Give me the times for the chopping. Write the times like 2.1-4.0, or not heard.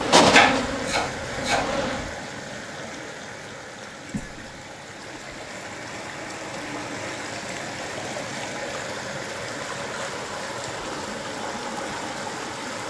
0.3-1.9.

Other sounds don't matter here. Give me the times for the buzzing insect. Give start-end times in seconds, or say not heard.
0.0-2.0.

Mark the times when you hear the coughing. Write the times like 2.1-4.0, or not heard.
4.1-4.7.